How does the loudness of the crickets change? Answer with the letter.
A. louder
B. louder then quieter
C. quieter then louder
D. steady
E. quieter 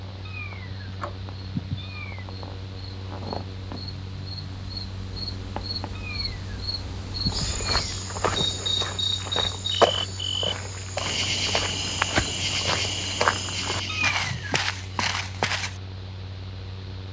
A.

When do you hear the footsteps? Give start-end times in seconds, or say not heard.
7.2-15.8.